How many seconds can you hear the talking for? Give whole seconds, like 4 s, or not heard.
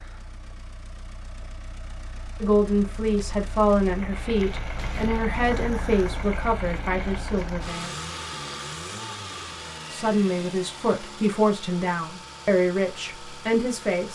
10 s.